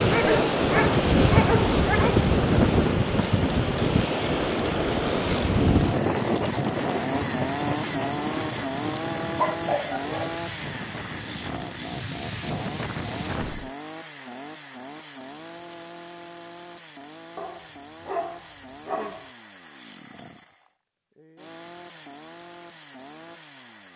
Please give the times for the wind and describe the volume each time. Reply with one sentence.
The wind can be heard from 0.0 to 13.7 s, getting quieter.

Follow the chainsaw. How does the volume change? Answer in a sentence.
The loudness of the chainsaw goes down.